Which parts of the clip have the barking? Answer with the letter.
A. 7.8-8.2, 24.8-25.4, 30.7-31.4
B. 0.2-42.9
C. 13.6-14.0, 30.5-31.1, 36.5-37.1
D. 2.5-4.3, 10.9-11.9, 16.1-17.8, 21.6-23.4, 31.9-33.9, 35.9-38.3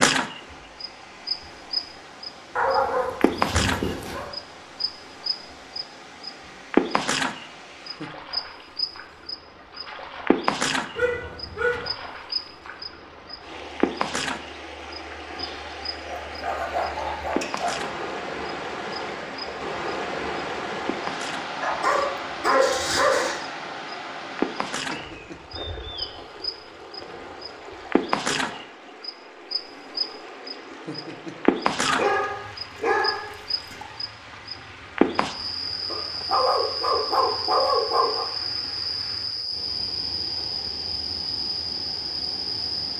D.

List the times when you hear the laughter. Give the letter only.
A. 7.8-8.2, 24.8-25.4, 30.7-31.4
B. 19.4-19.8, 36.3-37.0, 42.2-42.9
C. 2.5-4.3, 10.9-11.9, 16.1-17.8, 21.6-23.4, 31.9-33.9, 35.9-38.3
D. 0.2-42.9
A.